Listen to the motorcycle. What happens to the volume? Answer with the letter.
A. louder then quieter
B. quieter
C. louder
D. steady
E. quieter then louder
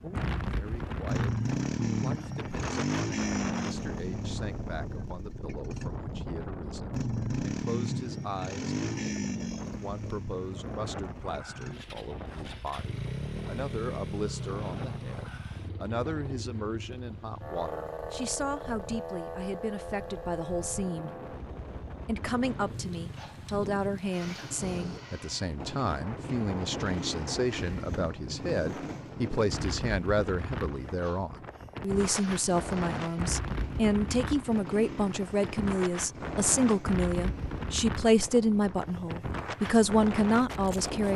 B.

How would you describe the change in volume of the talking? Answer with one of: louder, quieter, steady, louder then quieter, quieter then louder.
louder.